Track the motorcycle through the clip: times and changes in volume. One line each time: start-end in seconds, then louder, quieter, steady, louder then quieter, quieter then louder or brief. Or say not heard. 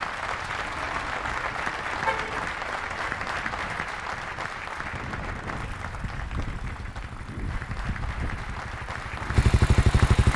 5.5-10.3 louder.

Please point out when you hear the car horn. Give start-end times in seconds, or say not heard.
0.6-2.5.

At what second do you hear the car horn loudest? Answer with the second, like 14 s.
2 s.